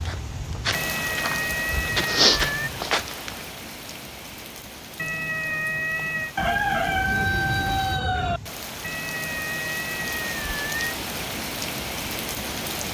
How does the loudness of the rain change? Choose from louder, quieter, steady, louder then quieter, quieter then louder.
quieter then louder.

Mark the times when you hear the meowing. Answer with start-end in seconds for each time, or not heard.
0.7-2.7, 5.0-6.3, 8.8-10.9.